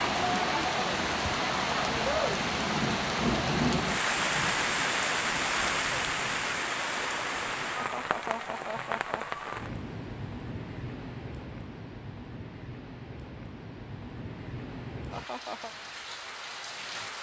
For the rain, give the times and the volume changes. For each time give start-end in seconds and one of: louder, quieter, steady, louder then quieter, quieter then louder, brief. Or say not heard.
0.0-17.1 quieter.